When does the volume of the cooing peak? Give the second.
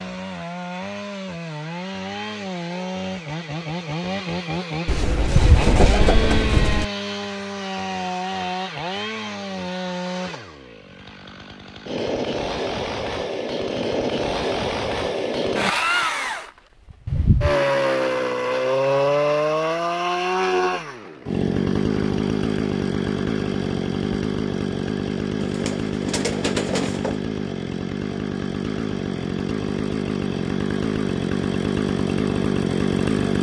6 s.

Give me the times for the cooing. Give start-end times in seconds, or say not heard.
4.8-6.8, 25.4-27.2.